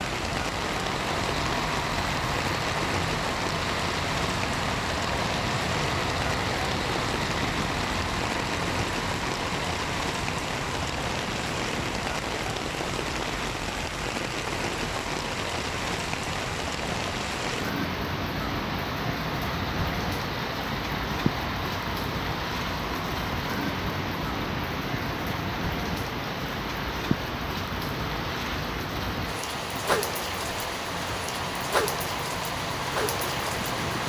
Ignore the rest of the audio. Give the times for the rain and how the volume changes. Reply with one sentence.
You can hear the rain from 0.0 to 34.0 s, at a steady volume.